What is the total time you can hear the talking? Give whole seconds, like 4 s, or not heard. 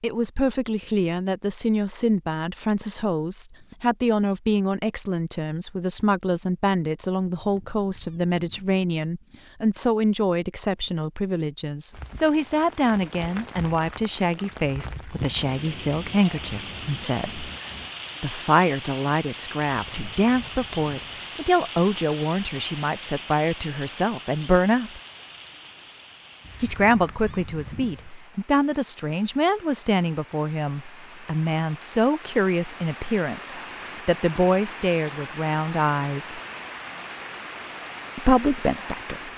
35 s.